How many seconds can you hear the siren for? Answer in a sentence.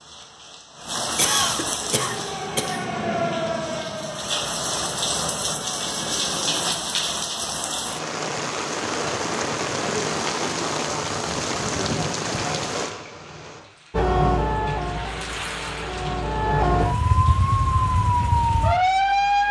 The siren can be heard for 10 seconds in total.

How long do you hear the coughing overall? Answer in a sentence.
You can hear the coughing for 2 seconds altogether.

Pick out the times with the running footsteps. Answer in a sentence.
The running footsteps can't be heard in this clip.